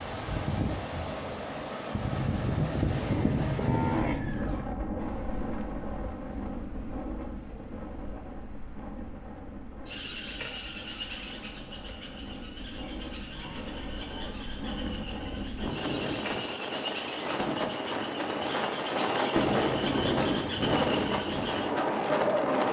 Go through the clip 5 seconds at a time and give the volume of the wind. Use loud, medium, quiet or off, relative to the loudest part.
loud, medium, quiet, loud, loud.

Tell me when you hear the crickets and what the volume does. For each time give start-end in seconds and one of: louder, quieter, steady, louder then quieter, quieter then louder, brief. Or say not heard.
5.0-22.6 louder.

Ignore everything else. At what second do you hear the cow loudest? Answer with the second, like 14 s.
4 s.